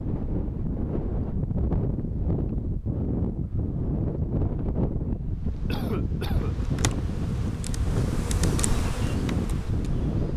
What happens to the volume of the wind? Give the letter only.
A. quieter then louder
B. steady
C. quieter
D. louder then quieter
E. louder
B.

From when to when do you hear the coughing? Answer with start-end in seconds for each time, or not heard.
5.7-6.5.